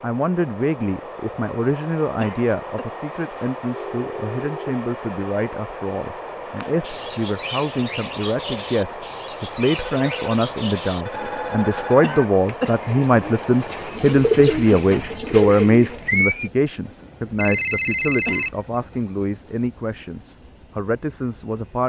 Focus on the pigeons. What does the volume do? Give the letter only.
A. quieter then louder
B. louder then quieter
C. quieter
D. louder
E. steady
D.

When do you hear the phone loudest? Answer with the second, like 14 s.
18 s.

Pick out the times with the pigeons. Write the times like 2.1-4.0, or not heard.
6.6-16.5.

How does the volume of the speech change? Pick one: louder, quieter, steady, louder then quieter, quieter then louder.
louder then quieter.